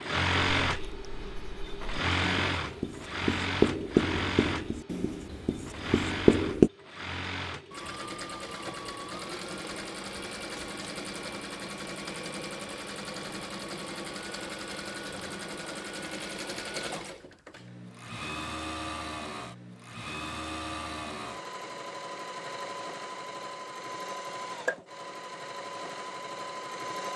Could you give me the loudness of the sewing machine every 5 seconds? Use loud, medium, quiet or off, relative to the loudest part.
loud, medium, medium, medium, medium, medium.